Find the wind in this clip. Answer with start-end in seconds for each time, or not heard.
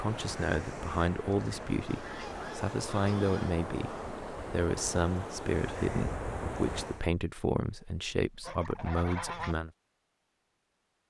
0.0-7.0.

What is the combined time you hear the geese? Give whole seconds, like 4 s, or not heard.
3 s.